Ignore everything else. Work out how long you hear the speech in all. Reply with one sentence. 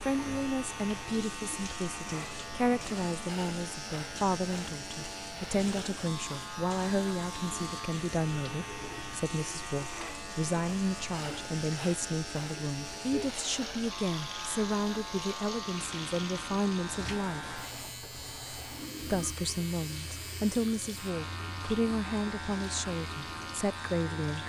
The speech can be heard for 23 seconds in total.